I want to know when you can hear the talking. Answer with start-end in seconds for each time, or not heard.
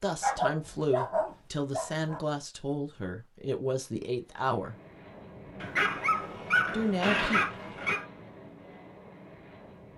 0.0-4.8, 6.7-7.4.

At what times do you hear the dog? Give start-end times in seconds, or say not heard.
0.2-2.2, 5.6-8.1.